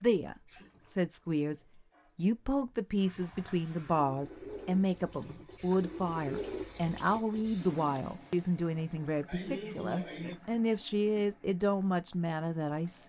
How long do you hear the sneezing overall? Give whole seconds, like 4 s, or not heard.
2 s.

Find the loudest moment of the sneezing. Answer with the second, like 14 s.
10 s.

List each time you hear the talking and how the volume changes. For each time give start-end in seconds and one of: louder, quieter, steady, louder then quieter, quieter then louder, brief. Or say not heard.
0.0-13.0 steady.